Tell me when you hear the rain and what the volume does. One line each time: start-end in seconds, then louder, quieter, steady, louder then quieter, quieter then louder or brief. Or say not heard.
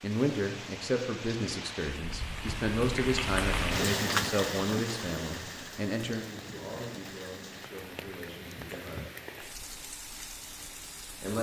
0.0-11.3 louder then quieter.